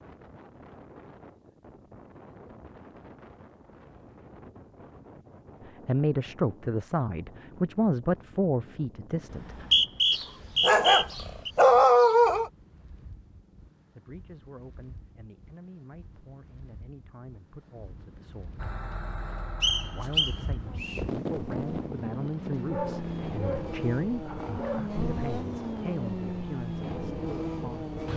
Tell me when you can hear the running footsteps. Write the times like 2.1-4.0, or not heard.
not heard.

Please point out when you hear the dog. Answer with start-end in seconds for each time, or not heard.
10.1-12.5, 22.6-24.9.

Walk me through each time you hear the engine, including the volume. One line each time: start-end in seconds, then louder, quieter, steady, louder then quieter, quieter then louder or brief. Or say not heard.
18.6-28.1 louder.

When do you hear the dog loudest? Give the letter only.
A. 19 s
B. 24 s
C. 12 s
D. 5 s
C.